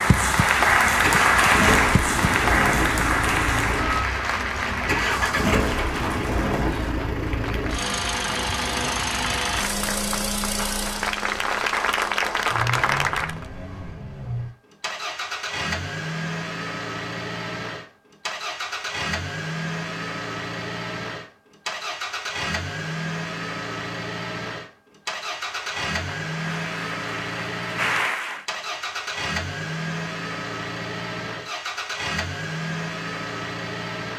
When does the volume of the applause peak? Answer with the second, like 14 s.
1 s.